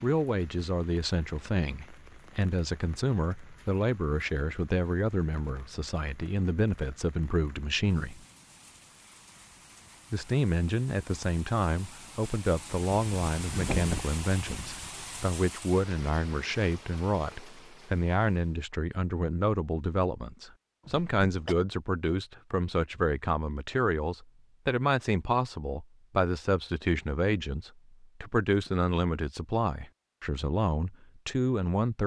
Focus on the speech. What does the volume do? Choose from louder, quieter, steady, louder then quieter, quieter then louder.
steady.